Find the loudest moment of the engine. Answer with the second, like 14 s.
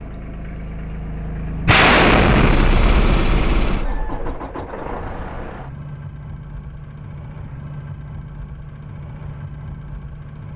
3 s.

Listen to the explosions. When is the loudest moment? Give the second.
2 s.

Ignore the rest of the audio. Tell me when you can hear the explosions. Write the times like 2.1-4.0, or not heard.
1.6-4.4.